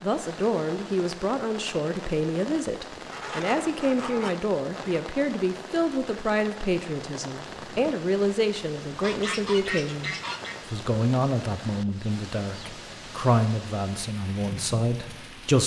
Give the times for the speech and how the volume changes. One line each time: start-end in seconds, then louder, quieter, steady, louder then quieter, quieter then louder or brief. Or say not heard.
0.0-15.6 steady.